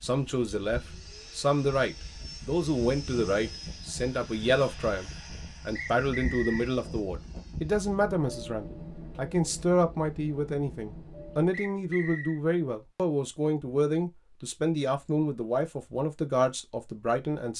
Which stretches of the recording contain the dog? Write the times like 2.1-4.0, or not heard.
not heard.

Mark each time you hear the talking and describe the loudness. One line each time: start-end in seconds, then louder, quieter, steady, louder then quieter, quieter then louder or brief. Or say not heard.
0.0-17.5 steady.